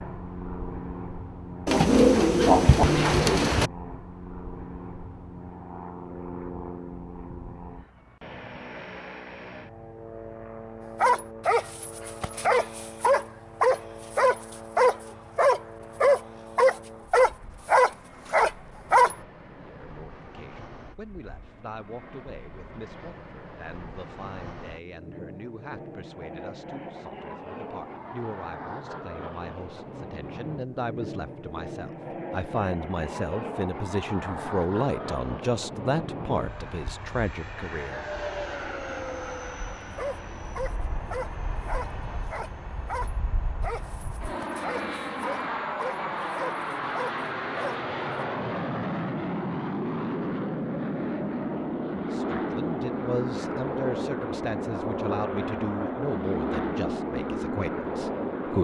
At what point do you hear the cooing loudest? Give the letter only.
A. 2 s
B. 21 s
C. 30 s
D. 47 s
A.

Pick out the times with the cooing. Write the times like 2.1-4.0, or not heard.
1.6-3.7.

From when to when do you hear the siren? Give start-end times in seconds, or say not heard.
not heard.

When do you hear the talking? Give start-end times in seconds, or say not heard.
19.6-38.0, 52.0-58.6.